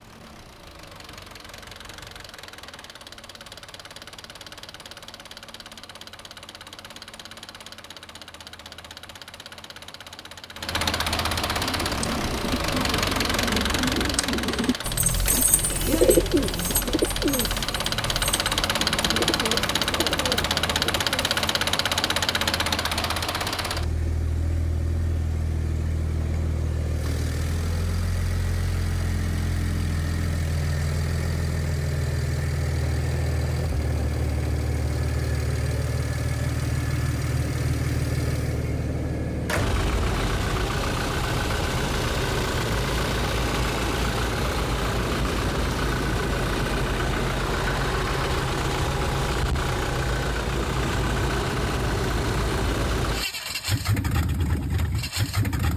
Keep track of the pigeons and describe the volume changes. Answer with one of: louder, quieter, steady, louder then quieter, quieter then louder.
louder then quieter.